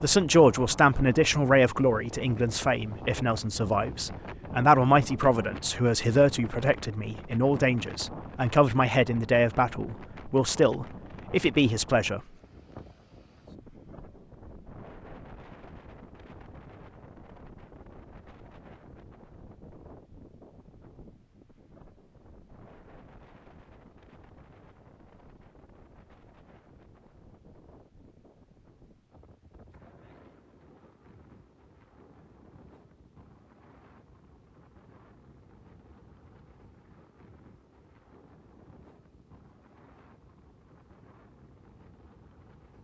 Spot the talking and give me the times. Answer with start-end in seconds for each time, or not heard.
0.0-12.2.